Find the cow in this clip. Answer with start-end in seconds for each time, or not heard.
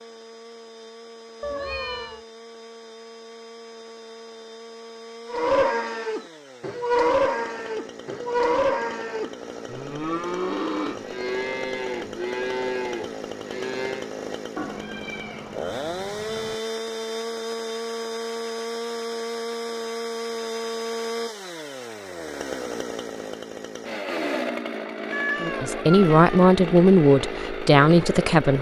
5.3-14.1.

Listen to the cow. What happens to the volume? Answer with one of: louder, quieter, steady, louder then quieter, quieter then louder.
quieter.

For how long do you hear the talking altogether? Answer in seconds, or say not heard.
3 s.